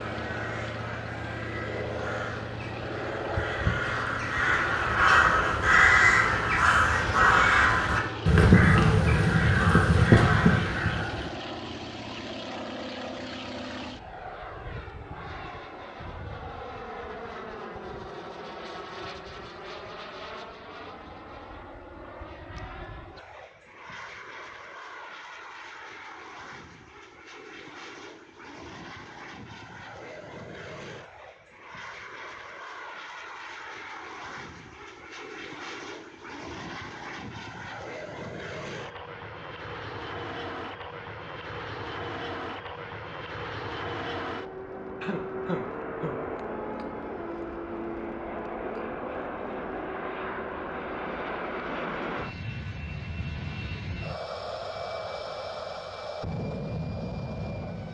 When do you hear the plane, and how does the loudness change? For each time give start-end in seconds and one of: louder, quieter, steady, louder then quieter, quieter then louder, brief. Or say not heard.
0.0-57.8 quieter then louder.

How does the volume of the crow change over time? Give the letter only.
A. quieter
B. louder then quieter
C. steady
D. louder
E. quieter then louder
D.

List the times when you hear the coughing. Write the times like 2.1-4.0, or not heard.
45.0-46.2.